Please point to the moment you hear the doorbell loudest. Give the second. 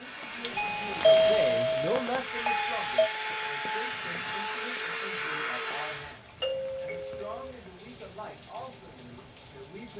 1 s.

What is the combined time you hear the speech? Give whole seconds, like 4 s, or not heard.
10 s.